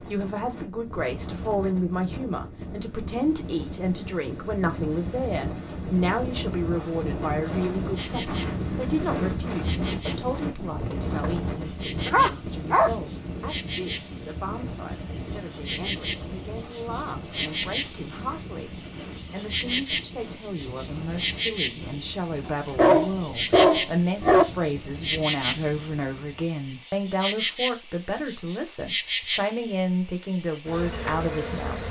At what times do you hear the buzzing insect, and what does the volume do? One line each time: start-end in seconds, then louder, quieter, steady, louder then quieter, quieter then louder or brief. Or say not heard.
8.0-31.8 louder.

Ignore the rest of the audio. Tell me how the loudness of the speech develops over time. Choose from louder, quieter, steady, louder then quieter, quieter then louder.
quieter then louder.